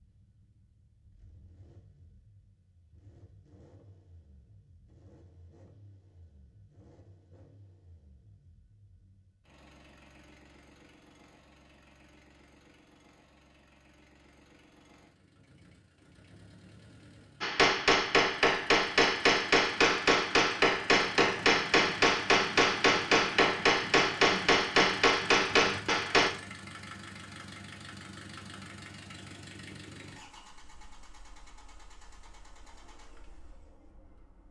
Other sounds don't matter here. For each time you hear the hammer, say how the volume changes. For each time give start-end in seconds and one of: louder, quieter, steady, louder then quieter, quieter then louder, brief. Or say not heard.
17.4-26.3 steady.